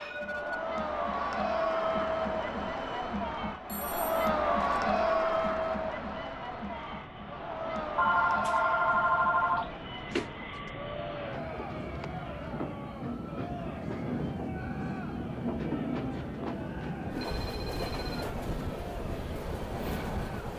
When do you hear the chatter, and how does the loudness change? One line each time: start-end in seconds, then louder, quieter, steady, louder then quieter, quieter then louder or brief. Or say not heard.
0.1-20.5 quieter.